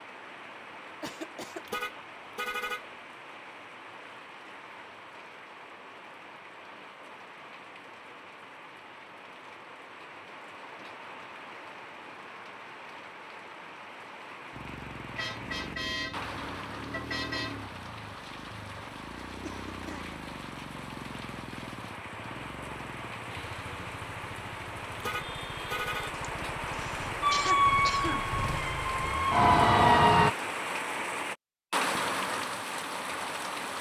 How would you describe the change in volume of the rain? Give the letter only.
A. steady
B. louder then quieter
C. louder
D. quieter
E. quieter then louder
C.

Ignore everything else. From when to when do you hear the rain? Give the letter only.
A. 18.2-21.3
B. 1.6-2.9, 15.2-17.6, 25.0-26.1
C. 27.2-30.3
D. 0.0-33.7
D.